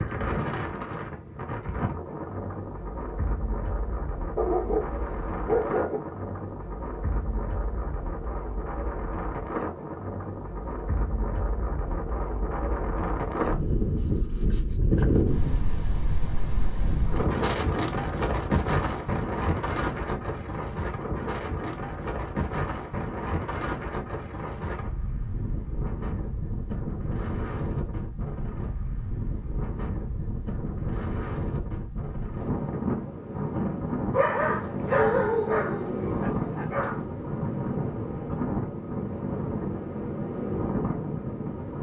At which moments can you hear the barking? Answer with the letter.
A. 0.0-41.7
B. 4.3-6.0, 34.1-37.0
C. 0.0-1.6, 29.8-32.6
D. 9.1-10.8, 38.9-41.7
B.